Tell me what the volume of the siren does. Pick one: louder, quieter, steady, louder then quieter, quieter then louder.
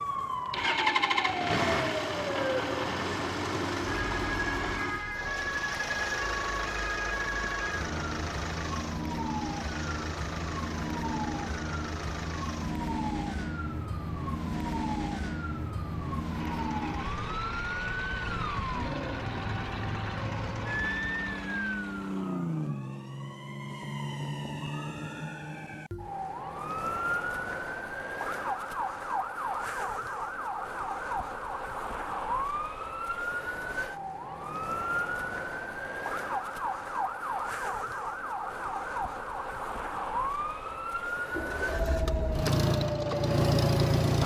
steady.